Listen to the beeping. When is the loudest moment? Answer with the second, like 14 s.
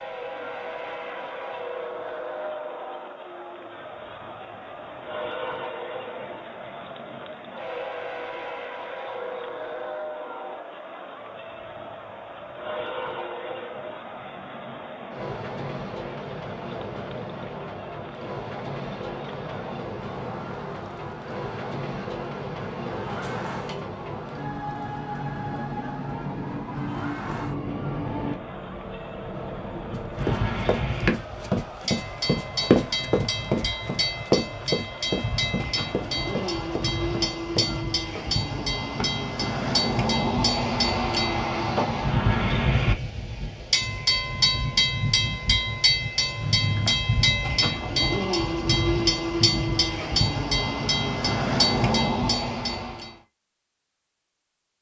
47 s.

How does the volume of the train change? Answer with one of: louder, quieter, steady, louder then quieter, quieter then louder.
louder.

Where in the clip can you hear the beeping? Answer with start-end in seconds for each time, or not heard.
23.2-23.9, 46.4-47.0.